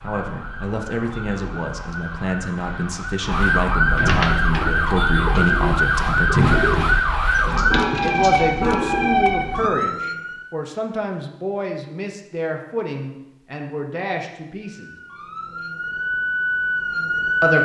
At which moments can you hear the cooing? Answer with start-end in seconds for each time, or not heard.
4.0-9.1.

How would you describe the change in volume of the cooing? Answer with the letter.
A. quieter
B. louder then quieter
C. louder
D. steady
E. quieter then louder
B.